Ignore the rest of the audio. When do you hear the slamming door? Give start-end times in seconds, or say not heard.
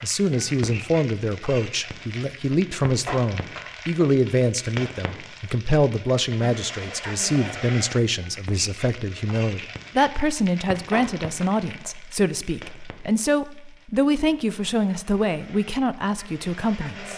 not heard.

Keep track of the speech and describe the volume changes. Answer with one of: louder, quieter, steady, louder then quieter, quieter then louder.
steady.